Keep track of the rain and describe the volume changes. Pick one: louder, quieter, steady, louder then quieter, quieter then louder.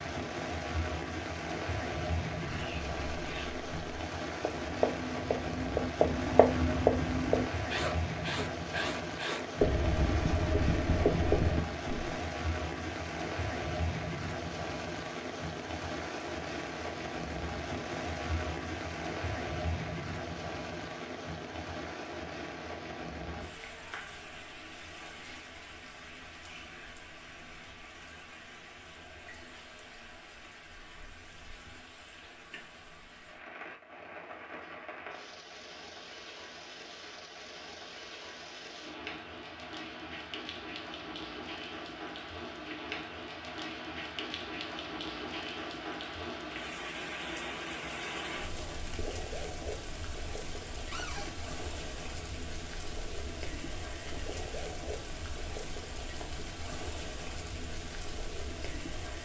quieter then louder.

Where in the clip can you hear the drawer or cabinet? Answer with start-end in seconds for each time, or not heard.
50.9-51.4.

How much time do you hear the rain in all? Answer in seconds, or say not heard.
59 s.